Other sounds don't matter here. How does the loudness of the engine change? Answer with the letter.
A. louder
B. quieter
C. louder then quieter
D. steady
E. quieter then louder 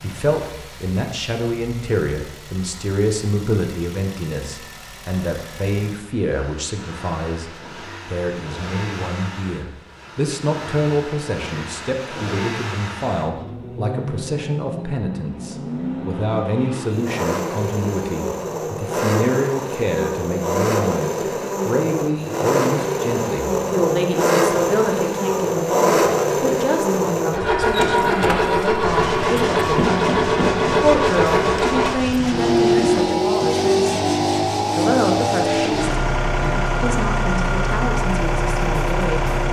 A.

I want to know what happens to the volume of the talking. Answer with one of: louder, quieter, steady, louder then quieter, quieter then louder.
steady.